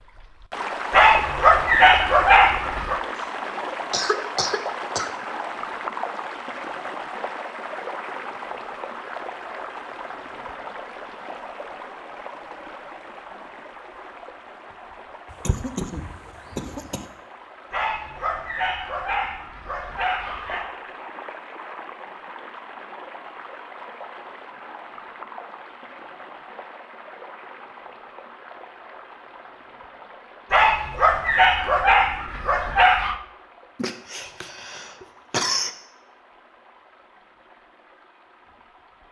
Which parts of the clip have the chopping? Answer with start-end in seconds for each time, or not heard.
not heard.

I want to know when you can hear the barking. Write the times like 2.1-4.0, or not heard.
0.9-3.0, 17.7-20.6, 30.5-33.1.